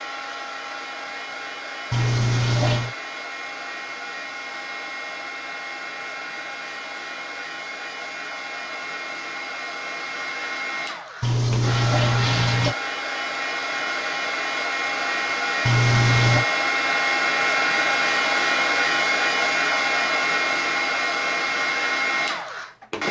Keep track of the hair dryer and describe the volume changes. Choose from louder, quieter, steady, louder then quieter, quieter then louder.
louder.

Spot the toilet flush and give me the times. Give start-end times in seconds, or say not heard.
1.9-3.0, 11.2-12.8, 15.7-16.4.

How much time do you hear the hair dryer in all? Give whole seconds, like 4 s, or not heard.
23 s.